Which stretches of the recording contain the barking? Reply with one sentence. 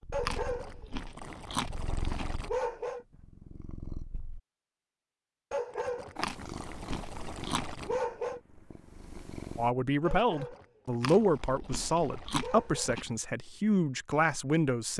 The barking can be heard from 0.1 to 3.0 s, from 5.5 to 8.4 s and from 10.0 to 12.9 s.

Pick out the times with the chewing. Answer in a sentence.
You can hear the chewing from 0.2 to 2.2 s, from 6.2 to 7.8 s and from 11.0 to 13.1 s.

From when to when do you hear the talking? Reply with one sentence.
The talking can be heard from 9.6 to 14.9 s.